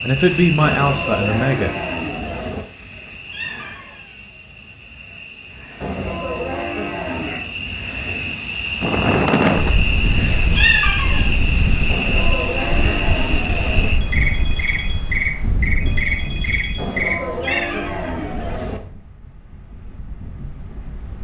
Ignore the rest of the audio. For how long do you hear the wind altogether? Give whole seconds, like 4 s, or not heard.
12 s.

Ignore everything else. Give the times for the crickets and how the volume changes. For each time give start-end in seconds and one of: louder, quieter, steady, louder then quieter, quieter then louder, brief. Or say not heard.
0.0-18.1 quieter then louder.